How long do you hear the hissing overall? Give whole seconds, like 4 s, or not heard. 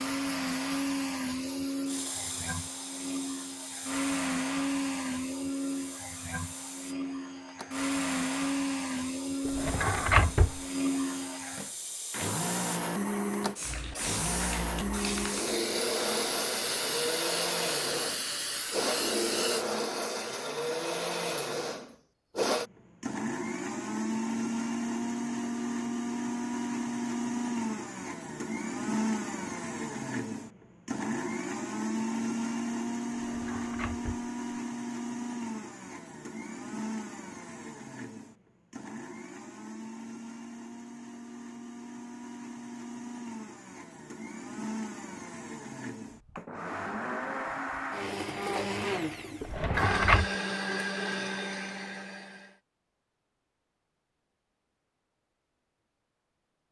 20 s.